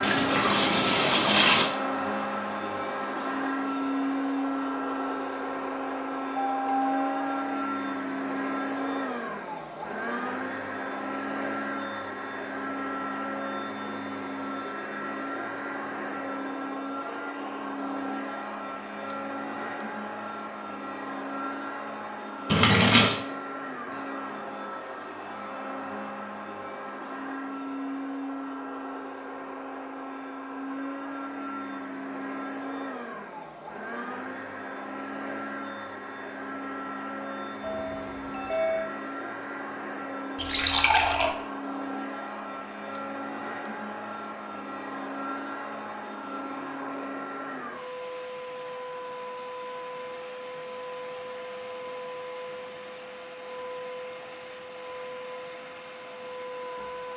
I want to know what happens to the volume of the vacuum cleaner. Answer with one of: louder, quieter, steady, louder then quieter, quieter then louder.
quieter.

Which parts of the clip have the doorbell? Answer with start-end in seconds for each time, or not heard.
6.3-7.7, 37.6-38.9.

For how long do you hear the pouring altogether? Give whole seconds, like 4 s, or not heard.
3 s.